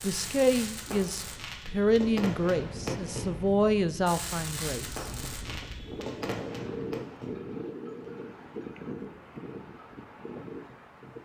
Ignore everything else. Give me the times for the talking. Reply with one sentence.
The talking can be heard from 0.0 to 4.8 s.